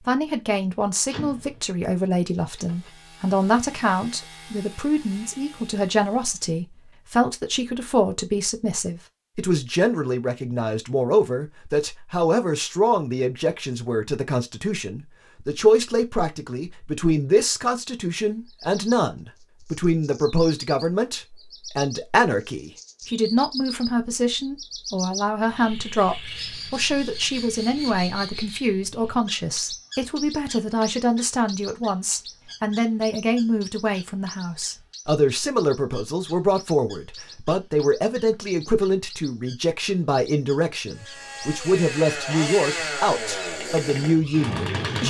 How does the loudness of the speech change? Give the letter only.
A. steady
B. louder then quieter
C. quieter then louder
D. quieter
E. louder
A.